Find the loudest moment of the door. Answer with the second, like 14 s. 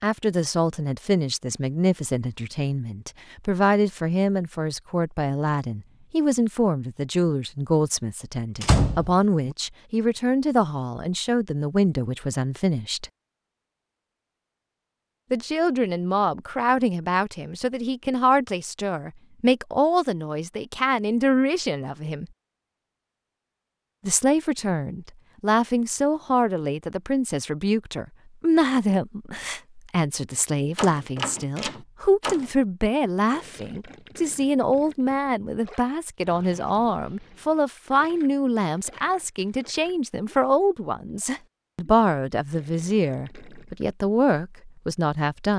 9 s.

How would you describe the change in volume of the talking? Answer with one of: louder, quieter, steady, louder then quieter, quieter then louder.
steady.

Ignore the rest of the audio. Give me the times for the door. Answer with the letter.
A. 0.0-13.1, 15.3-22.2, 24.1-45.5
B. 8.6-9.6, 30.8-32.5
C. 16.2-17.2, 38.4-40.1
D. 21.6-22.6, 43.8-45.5
B.